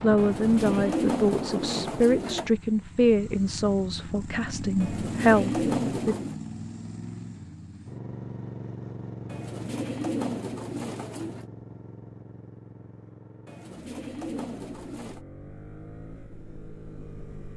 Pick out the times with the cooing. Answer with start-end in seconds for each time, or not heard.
0.1-2.5, 4.8-6.3, 9.2-11.4, 13.4-15.2.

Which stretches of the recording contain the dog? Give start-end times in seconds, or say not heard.
not heard.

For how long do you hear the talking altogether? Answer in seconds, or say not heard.
6 s.